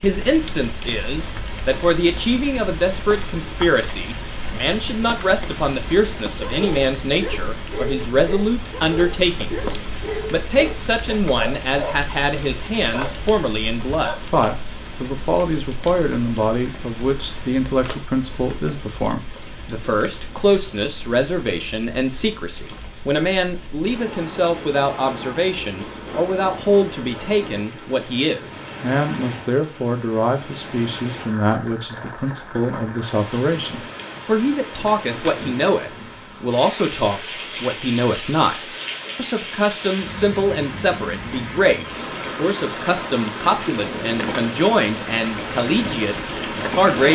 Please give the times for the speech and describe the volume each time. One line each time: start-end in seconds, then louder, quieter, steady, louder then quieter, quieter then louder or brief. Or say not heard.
0.0-47.0 steady.